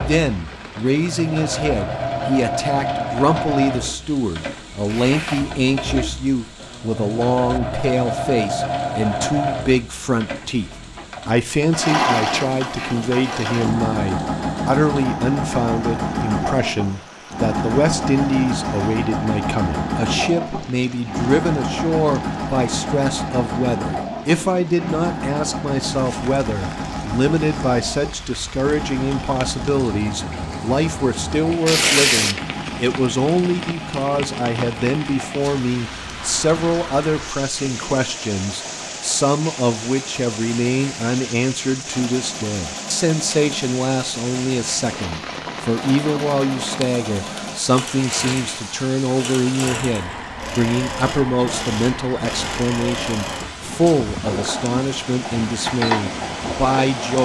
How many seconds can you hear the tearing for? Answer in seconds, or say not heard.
2 s.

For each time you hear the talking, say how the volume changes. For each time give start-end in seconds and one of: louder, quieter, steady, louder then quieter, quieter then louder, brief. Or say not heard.
0.1-57.1 steady.